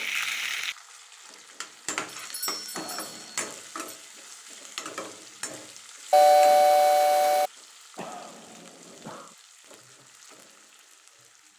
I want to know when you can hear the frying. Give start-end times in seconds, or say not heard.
0.0-11.5.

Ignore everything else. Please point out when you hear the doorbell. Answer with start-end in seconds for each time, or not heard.
2.2-4.0, 6.1-7.5.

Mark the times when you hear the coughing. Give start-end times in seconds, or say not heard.
2.7-3.5, 8.0-9.3.